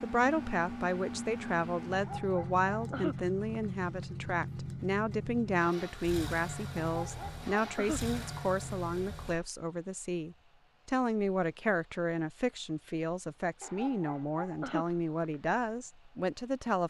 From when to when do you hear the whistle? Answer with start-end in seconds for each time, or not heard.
not heard.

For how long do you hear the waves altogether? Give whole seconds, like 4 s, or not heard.
not heard.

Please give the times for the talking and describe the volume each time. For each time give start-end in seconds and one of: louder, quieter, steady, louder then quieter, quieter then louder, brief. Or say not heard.
0.0-16.8 steady.